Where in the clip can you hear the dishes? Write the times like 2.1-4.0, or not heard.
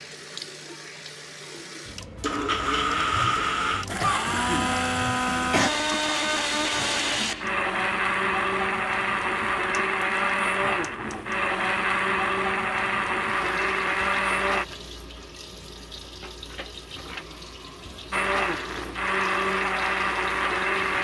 not heard.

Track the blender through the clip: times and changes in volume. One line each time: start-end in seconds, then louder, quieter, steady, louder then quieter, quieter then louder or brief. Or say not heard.
2.0-14.7 steady
18.1-20.9 brief.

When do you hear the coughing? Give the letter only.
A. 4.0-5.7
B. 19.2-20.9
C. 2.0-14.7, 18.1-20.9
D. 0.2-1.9
A.